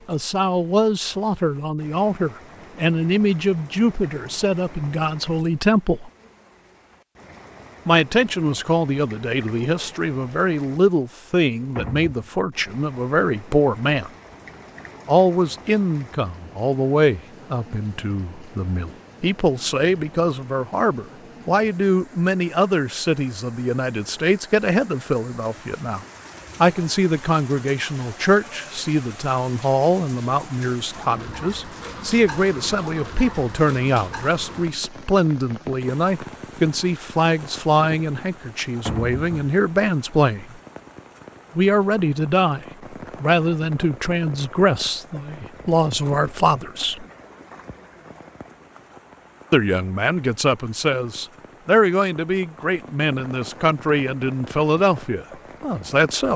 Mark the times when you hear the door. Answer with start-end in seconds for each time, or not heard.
11.8-12.3, 38.9-39.5.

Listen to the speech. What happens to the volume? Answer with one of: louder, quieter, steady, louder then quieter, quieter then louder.
steady.